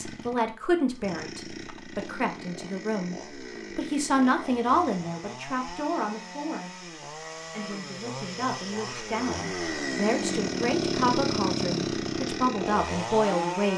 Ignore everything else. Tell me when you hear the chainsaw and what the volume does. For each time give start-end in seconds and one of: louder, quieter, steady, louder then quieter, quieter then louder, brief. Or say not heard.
0.0-13.7 louder.